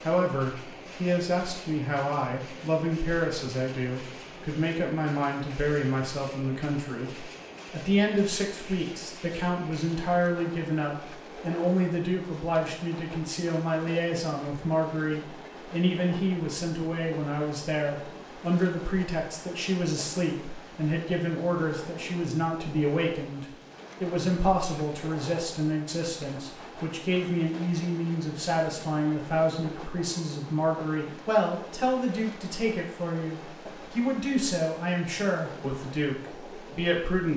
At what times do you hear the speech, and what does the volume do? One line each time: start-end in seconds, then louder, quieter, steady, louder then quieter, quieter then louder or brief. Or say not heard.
0.0-37.3 steady.